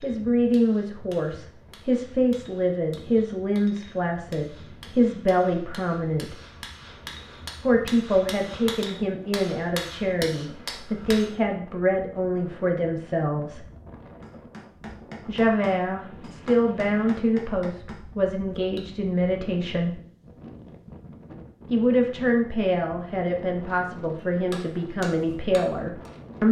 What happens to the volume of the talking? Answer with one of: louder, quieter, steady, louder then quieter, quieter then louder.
steady.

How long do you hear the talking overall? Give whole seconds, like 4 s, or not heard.
22 s.